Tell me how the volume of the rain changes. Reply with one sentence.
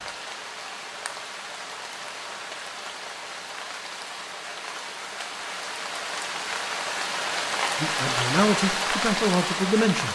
The loudness of the rain goes up.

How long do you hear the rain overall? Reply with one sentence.
The rain can be heard for 10 seconds in total.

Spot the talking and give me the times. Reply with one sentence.
You can hear the talking from 7.8 to 10.1 s.